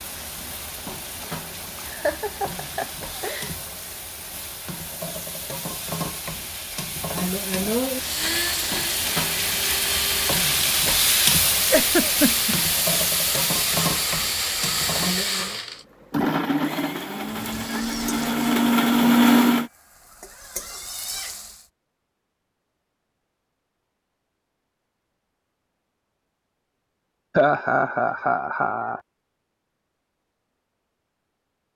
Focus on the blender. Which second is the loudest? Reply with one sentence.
The loudest moment of the blender is at 19 seconds.